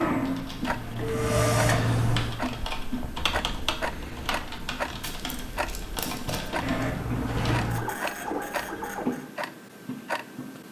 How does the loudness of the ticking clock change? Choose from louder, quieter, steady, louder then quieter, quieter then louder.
steady.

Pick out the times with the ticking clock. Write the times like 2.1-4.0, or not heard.
0.0-10.6.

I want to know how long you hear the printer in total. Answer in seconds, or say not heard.
5 s.